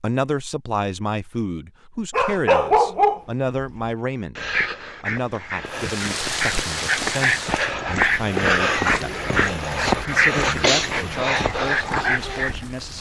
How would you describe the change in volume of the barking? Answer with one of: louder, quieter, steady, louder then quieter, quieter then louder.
quieter then louder.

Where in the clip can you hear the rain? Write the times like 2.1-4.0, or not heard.
5.7-12.9.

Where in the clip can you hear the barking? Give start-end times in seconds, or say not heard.
2.1-12.6.